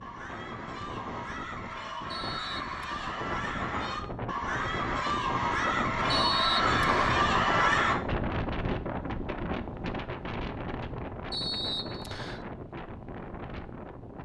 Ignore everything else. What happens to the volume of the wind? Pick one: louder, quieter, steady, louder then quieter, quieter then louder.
louder then quieter.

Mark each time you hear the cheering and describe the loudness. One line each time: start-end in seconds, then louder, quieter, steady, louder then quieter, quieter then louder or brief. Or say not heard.
0.0-8.0 louder.